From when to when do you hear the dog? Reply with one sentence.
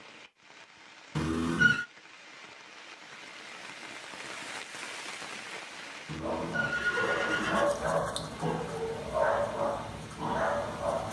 The dog can be heard from 6.2 to 11.0 s.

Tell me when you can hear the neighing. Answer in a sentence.
The neighing can be heard from 1.1 to 1.9 s and from 6.0 to 7.7 s.